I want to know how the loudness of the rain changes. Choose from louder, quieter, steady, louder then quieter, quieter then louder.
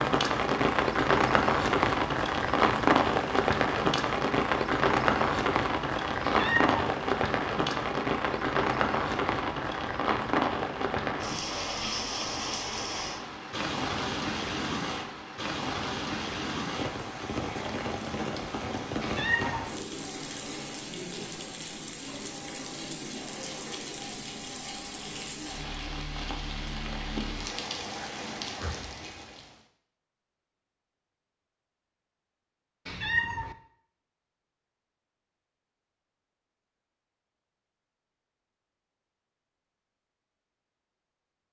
quieter.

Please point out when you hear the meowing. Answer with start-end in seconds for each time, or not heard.
6.2-6.8, 19.0-19.7, 32.9-33.5.